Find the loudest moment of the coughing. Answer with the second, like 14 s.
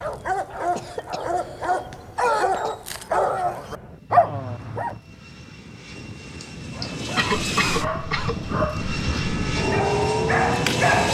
7 s.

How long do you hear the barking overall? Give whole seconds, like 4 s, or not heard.
9 s.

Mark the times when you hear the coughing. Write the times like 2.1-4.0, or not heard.
0.8-2.8, 6.4-8.4.